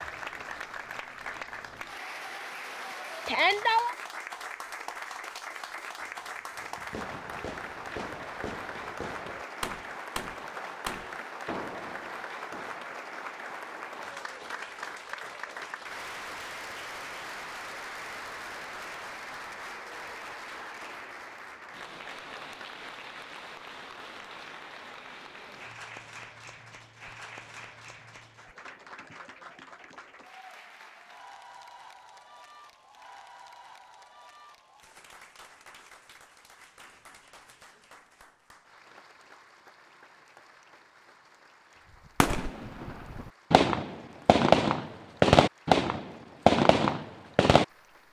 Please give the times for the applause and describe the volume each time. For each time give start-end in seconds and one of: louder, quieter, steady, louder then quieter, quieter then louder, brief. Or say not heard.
0.0-48.0 quieter.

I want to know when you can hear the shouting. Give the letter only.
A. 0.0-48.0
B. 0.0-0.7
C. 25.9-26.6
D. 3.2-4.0
D.